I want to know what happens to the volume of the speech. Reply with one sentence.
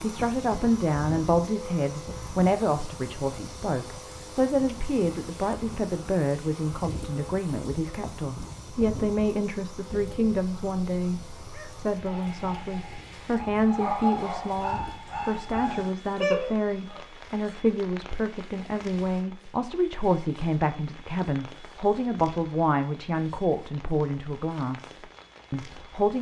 The loudness of the speech stays about the same.